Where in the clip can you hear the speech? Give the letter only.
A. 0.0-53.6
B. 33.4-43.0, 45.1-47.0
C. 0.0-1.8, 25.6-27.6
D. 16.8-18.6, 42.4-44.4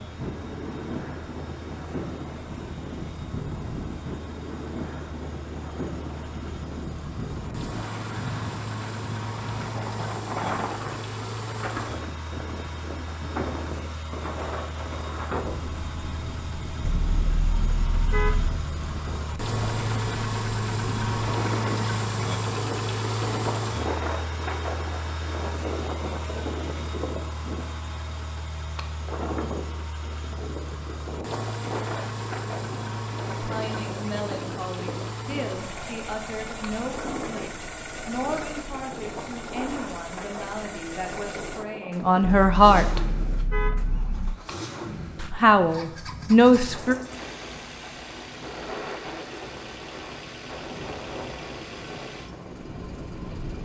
B.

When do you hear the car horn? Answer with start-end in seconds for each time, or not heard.
16.8-18.6, 42.4-44.4.